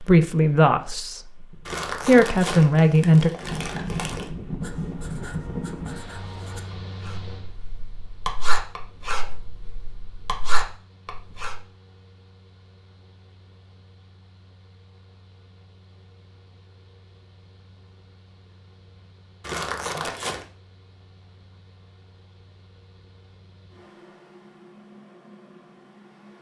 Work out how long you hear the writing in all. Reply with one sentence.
The writing can be heard for 7 seconds in total.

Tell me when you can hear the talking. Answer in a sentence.
You can hear the talking from 0.0 to 1.2 s and from 2.0 to 3.3 s.